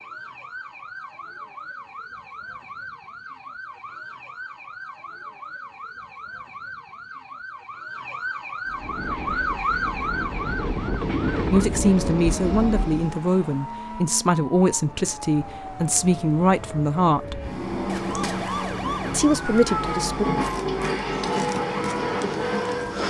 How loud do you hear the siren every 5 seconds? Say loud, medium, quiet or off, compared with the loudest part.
medium, loud, loud, loud, loud.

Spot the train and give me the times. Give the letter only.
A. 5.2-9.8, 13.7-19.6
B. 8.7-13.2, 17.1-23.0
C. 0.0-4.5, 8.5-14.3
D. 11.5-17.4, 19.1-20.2
B.